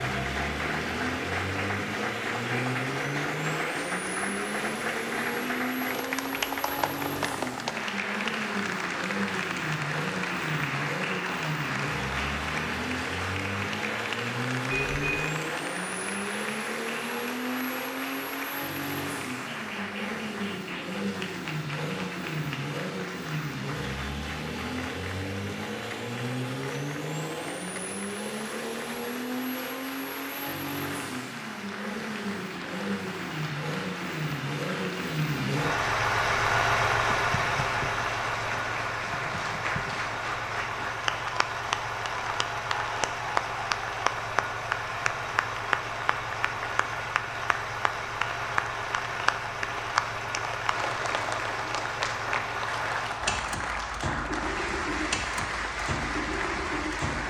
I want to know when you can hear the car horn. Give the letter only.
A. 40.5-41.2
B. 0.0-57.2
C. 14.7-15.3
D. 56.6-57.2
C.